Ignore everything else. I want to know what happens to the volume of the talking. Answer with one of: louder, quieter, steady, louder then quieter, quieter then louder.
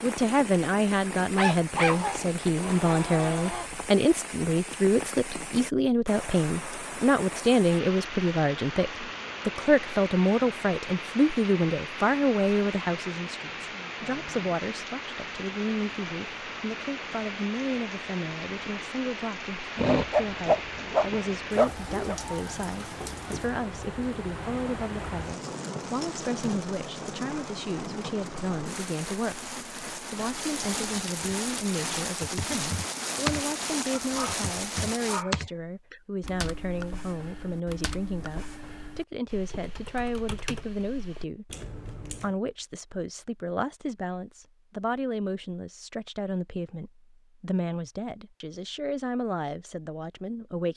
quieter.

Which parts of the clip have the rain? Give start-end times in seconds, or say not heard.
0.0-35.2.